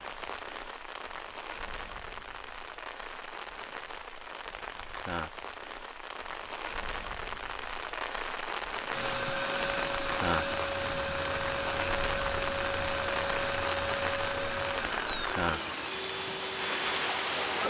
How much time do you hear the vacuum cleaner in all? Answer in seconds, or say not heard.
9 s.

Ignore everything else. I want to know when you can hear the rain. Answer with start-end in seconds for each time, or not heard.
0.0-17.6.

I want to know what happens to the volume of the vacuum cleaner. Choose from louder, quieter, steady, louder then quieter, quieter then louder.
steady.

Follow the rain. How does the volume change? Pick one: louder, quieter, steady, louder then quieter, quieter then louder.
louder.